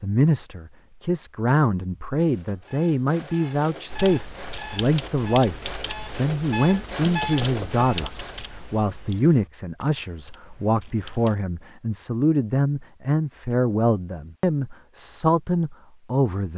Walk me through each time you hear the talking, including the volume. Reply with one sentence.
The talking can be heard from 0.0 to 16.5 s, at a steady volume.